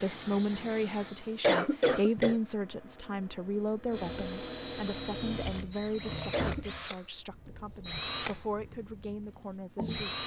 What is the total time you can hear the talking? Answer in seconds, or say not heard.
10 s.